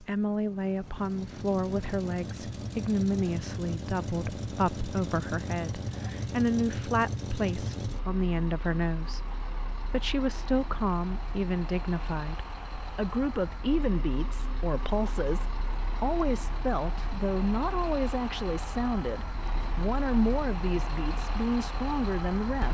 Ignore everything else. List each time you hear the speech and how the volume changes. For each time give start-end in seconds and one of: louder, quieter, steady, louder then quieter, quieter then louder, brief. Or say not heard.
0.0-22.6 steady.